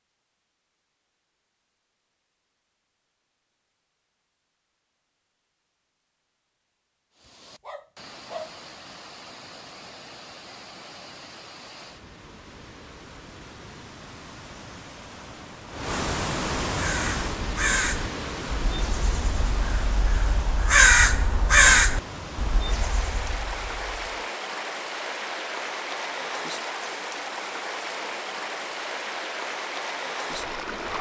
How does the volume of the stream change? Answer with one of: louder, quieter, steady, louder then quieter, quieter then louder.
louder.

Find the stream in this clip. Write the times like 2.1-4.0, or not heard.
7.2-30.9.